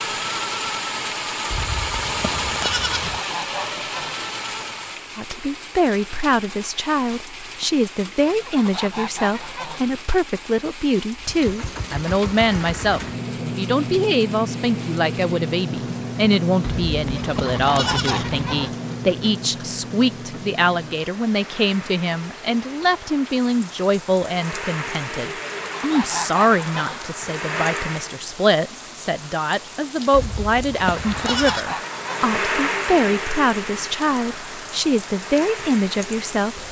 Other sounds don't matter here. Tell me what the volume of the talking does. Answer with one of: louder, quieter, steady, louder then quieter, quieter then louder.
steady.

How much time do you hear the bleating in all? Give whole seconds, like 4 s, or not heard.
5 s.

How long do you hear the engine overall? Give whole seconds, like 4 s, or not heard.
28 s.